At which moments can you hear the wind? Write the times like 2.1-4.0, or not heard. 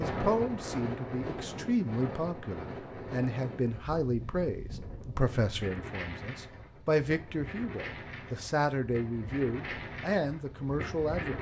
0.0-11.3.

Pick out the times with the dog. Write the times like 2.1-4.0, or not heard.
not heard.